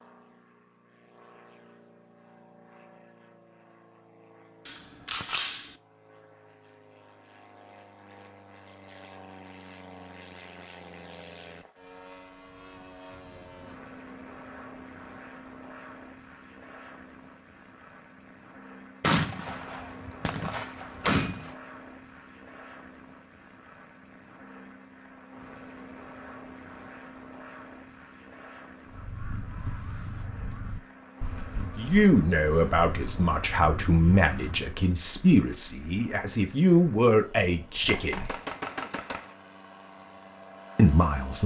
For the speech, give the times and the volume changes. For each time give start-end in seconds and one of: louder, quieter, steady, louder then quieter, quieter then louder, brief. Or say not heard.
31.8-38.4 steady
40.8-41.4 brief.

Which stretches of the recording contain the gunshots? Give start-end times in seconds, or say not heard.
4.7-5.8, 19.0-21.6, 37.6-39.4.